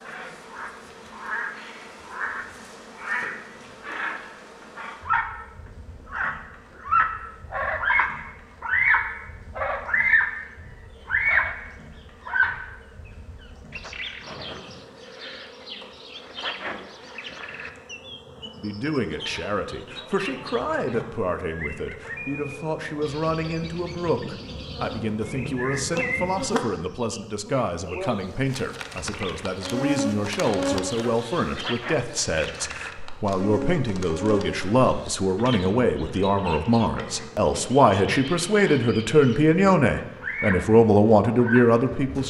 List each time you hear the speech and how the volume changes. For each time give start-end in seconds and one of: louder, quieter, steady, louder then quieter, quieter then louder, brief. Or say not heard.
18.6-42.2 louder.